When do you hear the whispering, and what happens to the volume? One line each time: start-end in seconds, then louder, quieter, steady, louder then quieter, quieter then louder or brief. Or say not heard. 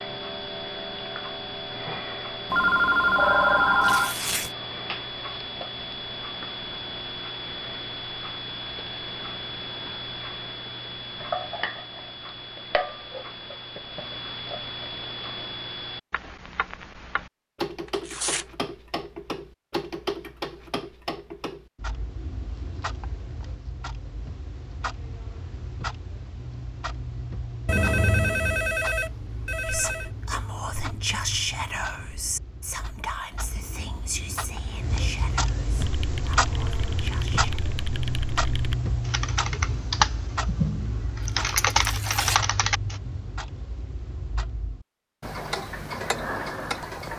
29.6-37.5 quieter.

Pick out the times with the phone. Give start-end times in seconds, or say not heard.
2.5-4.2, 27.6-30.1.